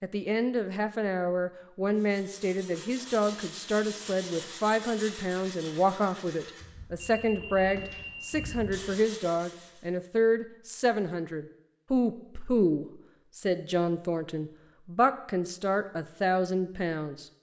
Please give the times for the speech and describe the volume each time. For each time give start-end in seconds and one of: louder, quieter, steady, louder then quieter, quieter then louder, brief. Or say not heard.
0.0-17.2 steady.